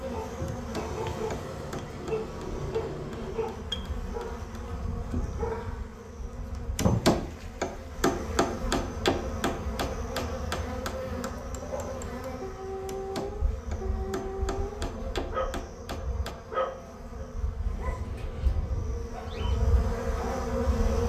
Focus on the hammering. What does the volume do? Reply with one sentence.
The loudness of the hammering goes up, then down.